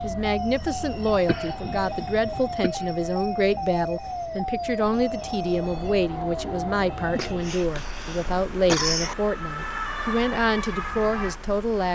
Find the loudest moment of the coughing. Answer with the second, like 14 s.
9 s.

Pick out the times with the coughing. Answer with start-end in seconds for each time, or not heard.
1.2-2.9, 7.2-9.2.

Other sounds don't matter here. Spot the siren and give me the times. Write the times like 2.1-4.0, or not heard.
0.0-11.8.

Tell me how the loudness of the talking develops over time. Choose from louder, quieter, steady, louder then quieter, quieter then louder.
steady.